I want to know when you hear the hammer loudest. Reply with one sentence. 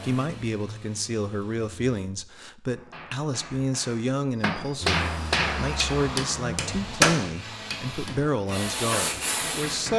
The loudest moment of the hammer is at 7 seconds.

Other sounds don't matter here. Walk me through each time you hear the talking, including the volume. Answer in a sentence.
The talking can be heard from 0.0 to 9.9 s, at a steady volume.